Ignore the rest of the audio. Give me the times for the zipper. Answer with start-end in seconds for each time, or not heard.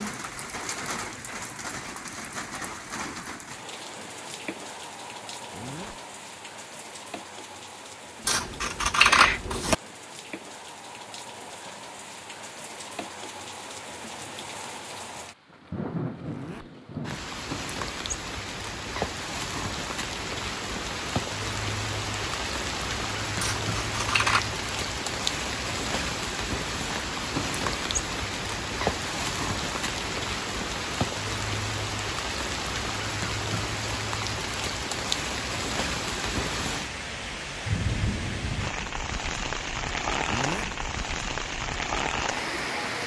5.5-6.0, 16.2-16.7, 40.2-40.7.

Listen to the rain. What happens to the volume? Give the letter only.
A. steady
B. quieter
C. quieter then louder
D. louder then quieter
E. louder
E.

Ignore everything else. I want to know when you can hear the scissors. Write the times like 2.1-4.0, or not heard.
8.2-9.8, 23.4-24.4.